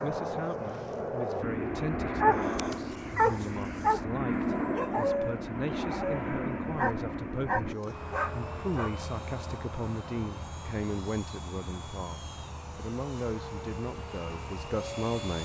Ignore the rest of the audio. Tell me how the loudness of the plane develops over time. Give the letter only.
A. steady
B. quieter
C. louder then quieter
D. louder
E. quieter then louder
B.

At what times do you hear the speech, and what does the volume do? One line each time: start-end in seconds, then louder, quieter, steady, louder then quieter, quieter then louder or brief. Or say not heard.
0.0-15.4 steady.